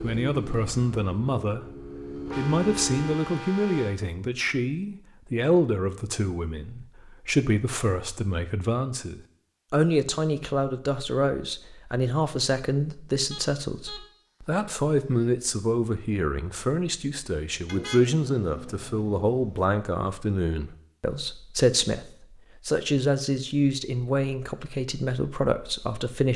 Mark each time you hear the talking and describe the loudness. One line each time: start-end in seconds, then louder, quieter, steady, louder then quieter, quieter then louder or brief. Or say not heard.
0.0-1.6 brief
2.4-26.3 steady.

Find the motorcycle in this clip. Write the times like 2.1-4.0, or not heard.
0.0-3.2.